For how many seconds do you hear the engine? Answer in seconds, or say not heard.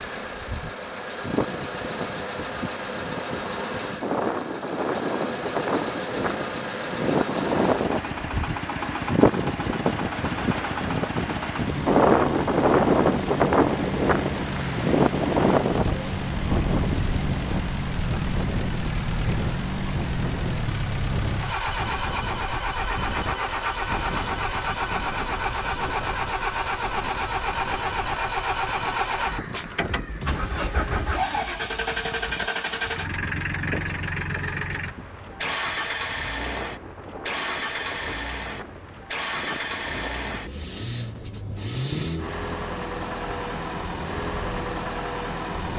46 s.